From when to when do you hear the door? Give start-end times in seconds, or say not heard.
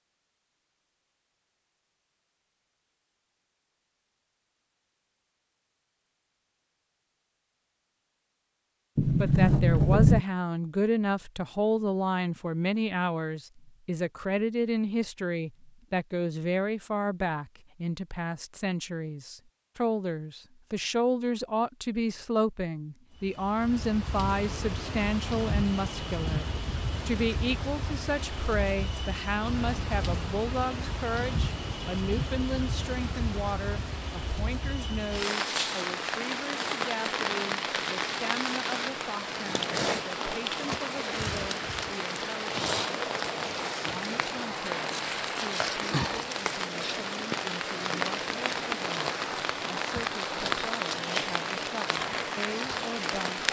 8.9-10.2.